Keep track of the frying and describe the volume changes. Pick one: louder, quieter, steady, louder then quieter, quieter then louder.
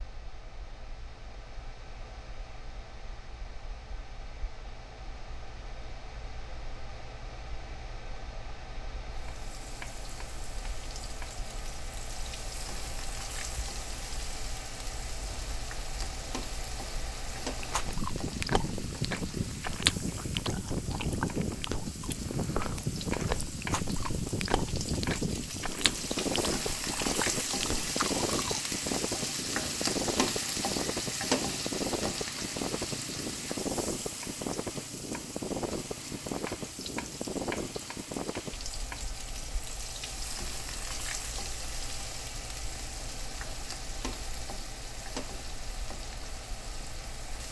louder then quieter.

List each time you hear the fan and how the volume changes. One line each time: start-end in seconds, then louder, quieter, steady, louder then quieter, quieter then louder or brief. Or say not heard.
0.0-47.4 louder then quieter.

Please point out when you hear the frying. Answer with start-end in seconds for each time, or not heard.
9.1-47.4.